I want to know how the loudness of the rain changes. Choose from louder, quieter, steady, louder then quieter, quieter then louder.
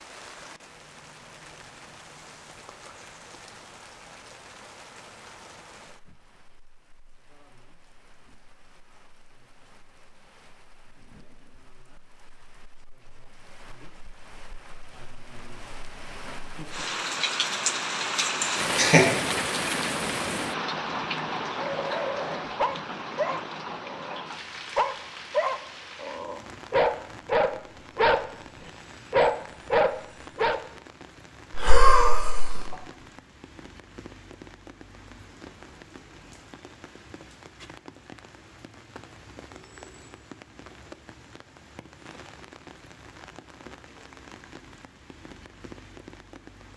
louder then quieter.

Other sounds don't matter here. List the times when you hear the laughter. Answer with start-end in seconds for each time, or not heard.
18.4-19.1, 31.5-32.7.